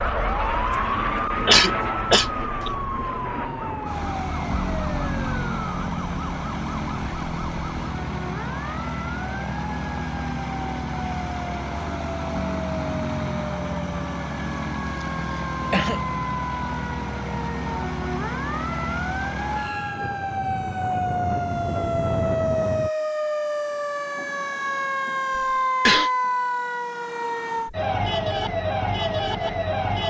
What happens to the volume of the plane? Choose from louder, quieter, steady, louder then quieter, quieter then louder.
steady.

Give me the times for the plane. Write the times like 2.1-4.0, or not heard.
0.0-22.9.